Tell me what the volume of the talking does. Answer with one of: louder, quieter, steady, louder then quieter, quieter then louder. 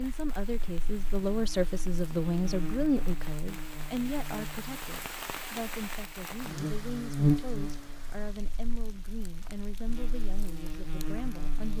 quieter.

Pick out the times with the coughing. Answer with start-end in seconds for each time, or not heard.
not heard.